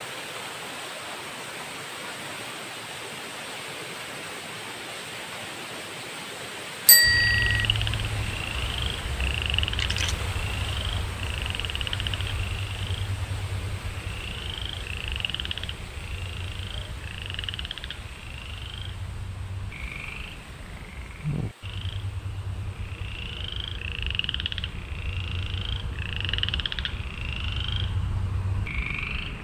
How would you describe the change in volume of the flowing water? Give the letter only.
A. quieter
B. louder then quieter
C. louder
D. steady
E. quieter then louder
A.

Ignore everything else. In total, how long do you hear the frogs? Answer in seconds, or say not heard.
22 s.